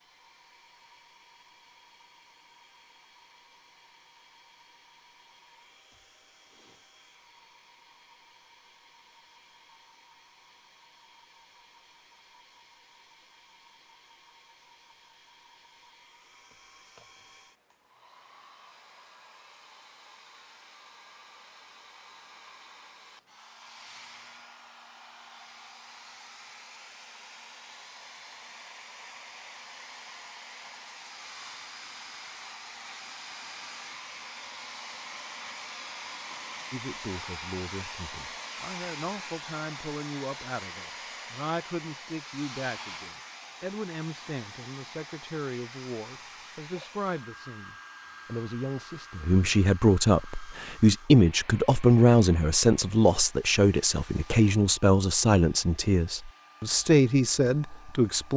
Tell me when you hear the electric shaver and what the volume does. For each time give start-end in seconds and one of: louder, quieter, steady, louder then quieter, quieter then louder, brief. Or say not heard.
not heard.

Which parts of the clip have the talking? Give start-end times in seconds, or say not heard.
36.7-58.3.